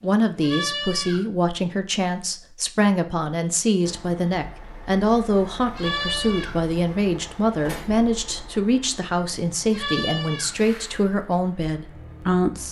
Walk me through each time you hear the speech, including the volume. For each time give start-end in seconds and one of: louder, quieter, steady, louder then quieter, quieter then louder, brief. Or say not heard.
0.0-12.6 steady.